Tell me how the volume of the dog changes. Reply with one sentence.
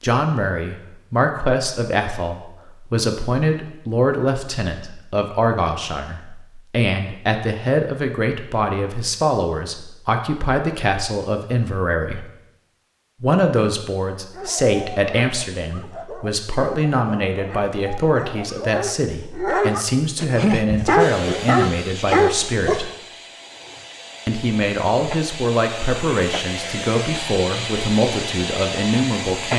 The loudness of the dog goes up.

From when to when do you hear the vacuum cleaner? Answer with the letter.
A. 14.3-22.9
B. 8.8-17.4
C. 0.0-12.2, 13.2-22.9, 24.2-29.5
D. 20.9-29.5
D.